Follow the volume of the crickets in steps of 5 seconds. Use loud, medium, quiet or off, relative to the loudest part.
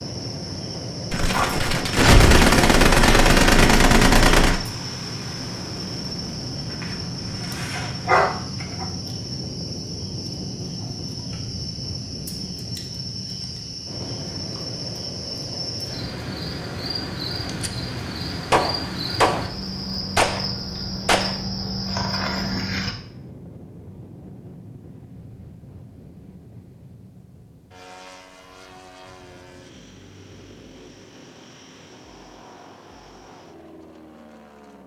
medium, medium, medium, loud, loud, off, off.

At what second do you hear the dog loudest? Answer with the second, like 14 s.
8 s.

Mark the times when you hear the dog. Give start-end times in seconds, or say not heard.
6.7-8.8.